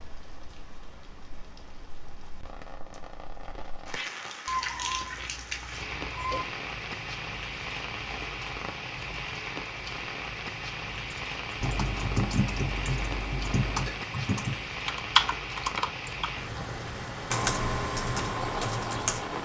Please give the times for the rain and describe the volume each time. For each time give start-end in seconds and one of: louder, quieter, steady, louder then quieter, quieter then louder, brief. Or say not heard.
0.0-19.3 louder.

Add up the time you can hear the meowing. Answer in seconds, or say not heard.
4 s.